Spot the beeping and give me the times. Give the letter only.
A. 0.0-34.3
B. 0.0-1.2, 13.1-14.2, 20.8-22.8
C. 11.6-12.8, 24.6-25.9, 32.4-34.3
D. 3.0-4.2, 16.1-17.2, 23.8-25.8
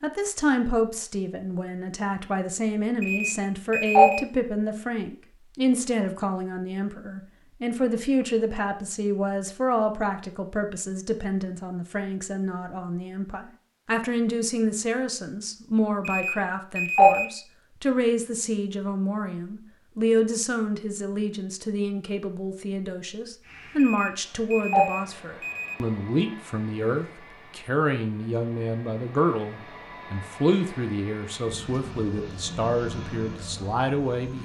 D.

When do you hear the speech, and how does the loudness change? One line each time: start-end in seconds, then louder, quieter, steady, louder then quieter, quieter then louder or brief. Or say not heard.
0.0-34.3 steady.